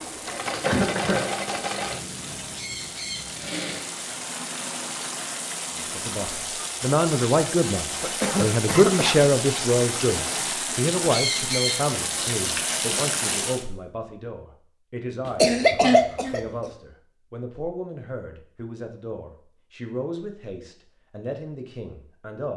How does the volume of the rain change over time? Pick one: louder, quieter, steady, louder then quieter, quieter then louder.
louder.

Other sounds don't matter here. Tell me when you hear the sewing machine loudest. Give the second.
1 s.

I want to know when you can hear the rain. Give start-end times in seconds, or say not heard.
0.0-13.7.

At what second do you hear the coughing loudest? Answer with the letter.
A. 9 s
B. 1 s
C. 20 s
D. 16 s
D.